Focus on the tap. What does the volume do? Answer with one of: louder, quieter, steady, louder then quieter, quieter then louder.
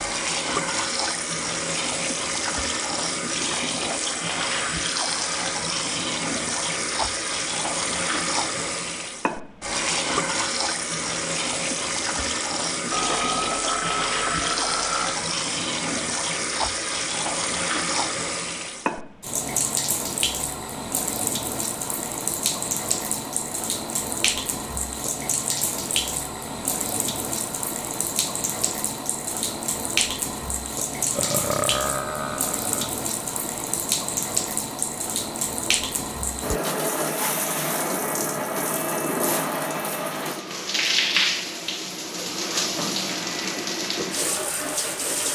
steady.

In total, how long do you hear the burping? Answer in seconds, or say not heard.
4 s.